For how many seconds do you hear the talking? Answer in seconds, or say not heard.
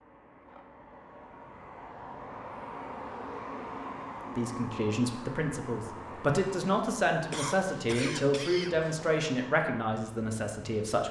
7 s.